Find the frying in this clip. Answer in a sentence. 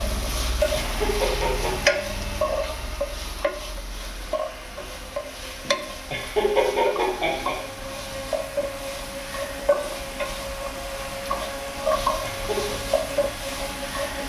The frying can be heard from 0.0 to 14.2 s.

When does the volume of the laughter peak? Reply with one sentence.
The volume of the laughter peaks at 7 seconds.